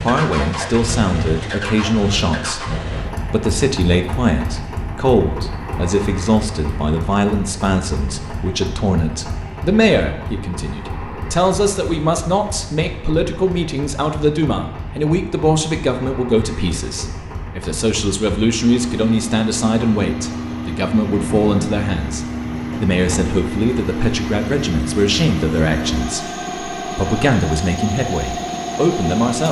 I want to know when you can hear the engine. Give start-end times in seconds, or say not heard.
0.0-29.4.